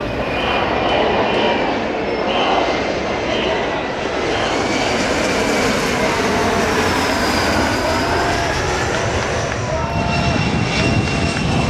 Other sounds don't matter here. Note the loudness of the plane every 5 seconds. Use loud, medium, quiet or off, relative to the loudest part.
medium, loud, loud.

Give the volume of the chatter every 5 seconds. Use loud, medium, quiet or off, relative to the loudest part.
loud, medium, medium.